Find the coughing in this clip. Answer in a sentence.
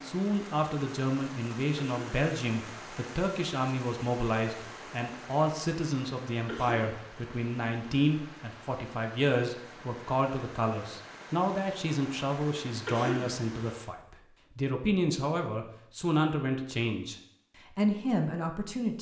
You can hear the coughing from 1.8 to 2.3 s, from 6.5 to 7.0 s and from 12.8 to 13.4 s.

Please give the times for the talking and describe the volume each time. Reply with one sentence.
You can hear the talking from 0.0 to 18.9 s, at a steady volume.